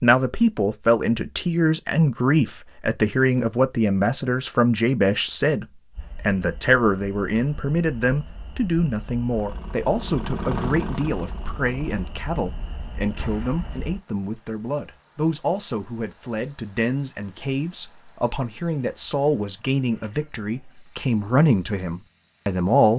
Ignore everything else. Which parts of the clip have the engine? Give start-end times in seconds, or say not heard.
9.3-12.1.